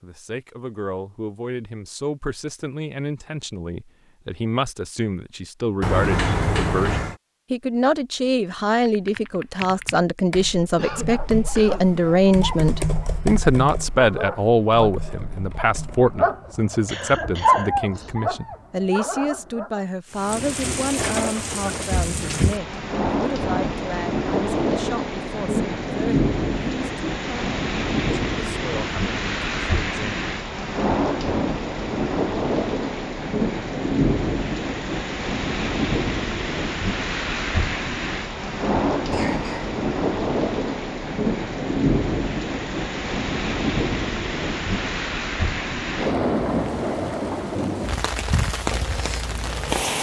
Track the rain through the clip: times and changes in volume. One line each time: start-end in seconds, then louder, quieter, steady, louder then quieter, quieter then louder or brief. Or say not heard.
20.1-49.9 steady.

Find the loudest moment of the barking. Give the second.
18 s.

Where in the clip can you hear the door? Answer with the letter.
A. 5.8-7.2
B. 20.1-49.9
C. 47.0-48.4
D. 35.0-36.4
A.